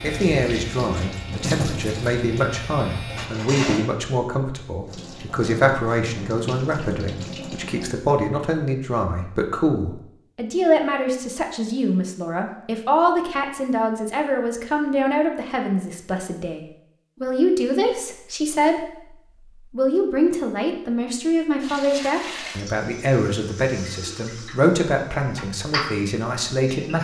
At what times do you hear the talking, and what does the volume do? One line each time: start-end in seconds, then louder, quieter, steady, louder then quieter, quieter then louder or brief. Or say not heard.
0.0-26.9 steady.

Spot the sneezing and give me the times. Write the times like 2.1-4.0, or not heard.
not heard.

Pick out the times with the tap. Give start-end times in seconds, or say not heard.
0.0-8.0, 21.6-26.9.